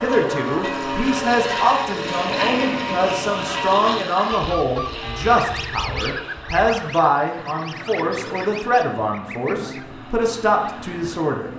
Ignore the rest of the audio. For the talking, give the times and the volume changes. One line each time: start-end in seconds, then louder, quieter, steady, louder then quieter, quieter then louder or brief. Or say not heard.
0.0-11.5 steady.